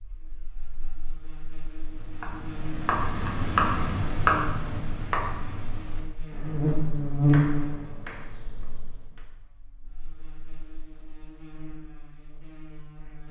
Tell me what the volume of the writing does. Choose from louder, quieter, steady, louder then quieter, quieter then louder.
louder then quieter.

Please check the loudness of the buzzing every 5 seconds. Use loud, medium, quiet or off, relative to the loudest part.
quiet, loud, quiet.